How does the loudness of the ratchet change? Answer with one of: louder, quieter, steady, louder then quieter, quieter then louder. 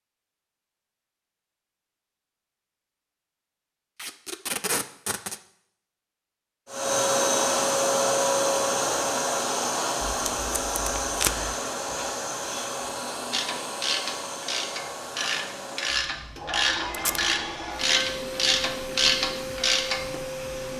louder.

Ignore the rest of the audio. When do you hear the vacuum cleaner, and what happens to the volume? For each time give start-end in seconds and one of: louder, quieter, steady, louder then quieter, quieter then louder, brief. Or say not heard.
6.7-20.7 quieter.